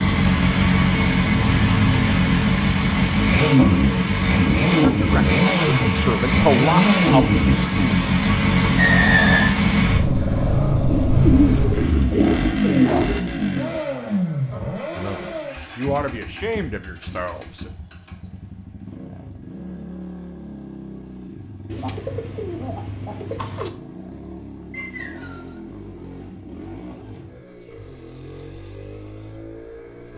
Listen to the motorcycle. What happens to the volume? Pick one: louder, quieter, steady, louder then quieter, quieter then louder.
quieter.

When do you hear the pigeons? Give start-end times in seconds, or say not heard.
10.9-13.2, 21.6-23.7.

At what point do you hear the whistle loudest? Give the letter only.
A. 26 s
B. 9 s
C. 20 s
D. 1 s
B.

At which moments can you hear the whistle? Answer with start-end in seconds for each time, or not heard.
8.8-9.5, 24.7-25.6.